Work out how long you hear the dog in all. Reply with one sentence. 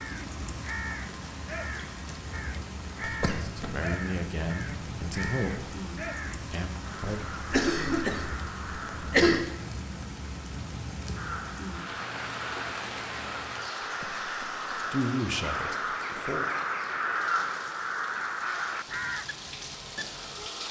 You can't hear the dog here.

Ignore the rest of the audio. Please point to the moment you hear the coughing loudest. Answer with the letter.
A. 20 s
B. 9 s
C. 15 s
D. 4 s
B.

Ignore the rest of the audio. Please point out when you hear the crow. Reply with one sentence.
The crow can be heard from 0.0 to 9.2 s and from 11.2 to 20.6 s.